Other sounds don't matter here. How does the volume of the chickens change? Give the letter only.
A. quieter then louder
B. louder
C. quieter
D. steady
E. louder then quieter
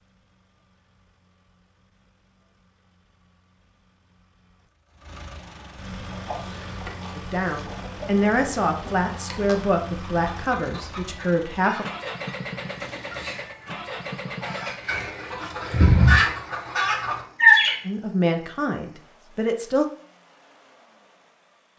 B.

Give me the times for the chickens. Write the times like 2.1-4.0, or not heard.
6.1-17.8.